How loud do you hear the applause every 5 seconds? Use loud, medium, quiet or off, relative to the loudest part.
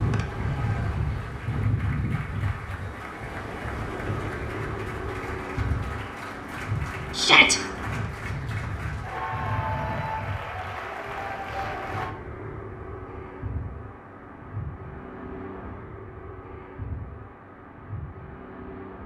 medium, loud, loud, off.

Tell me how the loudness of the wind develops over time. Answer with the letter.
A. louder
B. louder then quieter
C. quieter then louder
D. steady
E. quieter
E.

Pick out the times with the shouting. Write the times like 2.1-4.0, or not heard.
7.2-7.6.